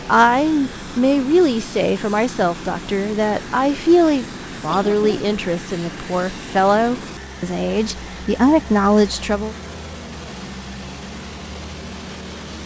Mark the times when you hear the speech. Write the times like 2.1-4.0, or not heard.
0.1-9.6.